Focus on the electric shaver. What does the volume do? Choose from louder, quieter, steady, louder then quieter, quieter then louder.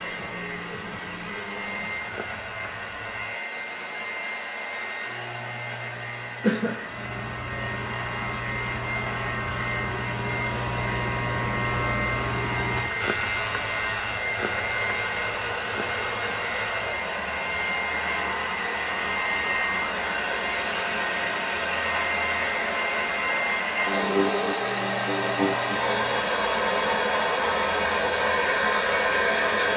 louder then quieter.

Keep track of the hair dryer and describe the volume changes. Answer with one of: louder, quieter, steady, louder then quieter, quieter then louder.
louder.